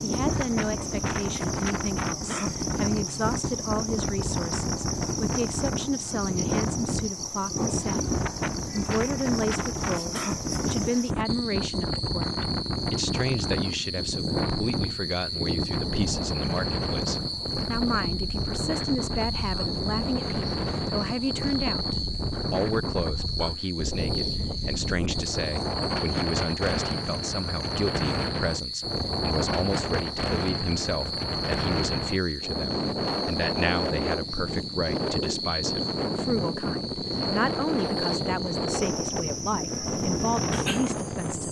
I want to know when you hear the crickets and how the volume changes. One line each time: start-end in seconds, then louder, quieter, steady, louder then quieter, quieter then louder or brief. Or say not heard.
0.0-41.4 steady.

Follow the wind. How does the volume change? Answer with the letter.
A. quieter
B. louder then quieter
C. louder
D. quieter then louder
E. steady
E.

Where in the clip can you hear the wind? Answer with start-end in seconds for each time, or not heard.
0.0-41.4.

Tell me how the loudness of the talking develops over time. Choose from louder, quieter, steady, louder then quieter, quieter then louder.
steady.